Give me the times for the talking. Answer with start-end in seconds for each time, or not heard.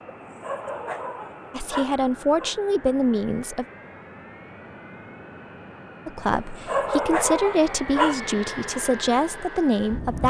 1.5-3.6, 6.0-10.2.